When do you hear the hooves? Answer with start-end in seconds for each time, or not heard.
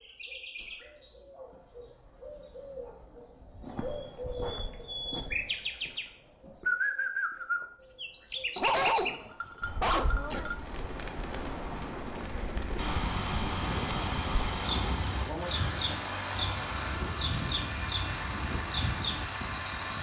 not heard.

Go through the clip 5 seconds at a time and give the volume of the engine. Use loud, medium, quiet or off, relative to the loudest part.
off, off, loud, loud.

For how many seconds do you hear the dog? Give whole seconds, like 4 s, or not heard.
2 s.